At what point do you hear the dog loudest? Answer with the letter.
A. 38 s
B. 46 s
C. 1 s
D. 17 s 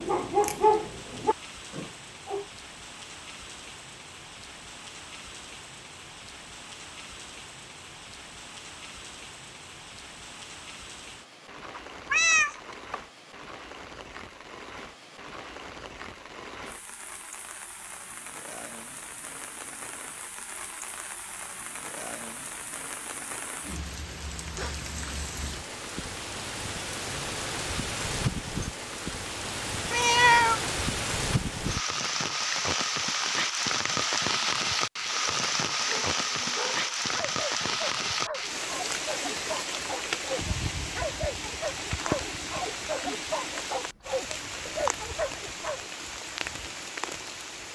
C.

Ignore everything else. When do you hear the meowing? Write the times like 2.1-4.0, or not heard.
11.8-13.0, 29.9-30.6.